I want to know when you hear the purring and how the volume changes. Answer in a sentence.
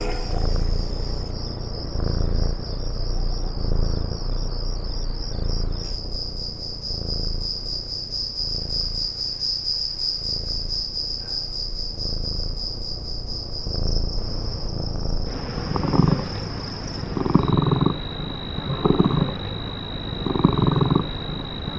The purring can be heard from 0.0 to 21.7 s, getting quieter then louder.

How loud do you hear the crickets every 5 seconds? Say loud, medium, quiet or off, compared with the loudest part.
medium, loud, loud, medium, medium.